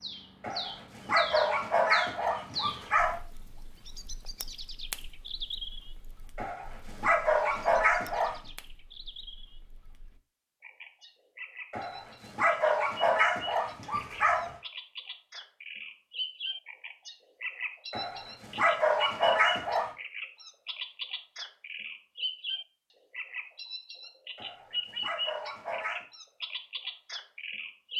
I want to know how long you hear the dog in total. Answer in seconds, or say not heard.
11 s.